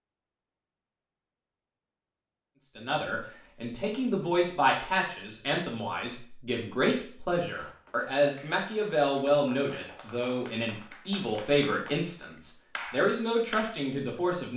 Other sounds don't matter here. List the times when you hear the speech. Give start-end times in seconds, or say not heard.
2.8-14.5.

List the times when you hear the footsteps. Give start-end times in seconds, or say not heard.
not heard.